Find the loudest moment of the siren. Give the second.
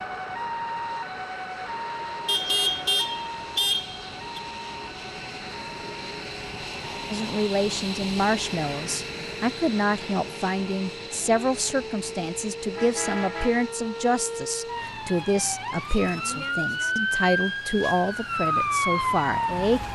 19 s.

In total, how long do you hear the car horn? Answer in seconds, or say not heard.
3 s.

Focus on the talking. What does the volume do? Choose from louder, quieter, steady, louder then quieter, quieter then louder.
steady.